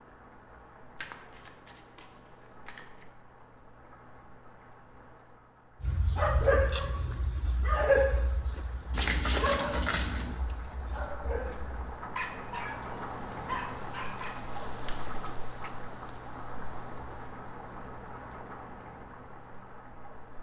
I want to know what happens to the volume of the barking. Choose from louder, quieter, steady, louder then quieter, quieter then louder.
quieter.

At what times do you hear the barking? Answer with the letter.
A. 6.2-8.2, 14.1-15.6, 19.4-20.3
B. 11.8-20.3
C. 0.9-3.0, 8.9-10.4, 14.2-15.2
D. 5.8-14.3
D.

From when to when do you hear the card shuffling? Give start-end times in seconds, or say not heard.
0.9-3.0, 8.9-10.4, 14.2-15.2.